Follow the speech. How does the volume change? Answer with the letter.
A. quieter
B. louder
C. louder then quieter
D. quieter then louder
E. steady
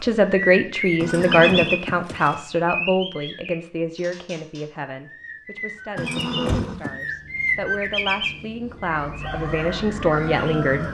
D.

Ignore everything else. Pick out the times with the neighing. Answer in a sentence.
The neighing can be heard from 0.9 to 2.5 s and from 6.0 to 7.0 s.